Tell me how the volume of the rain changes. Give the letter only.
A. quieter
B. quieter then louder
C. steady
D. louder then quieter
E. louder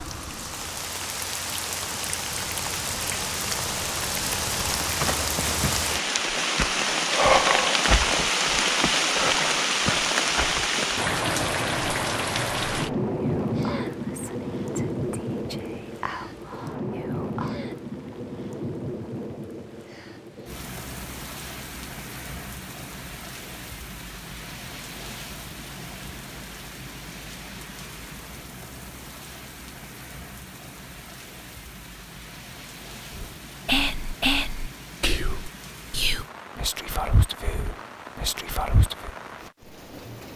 A.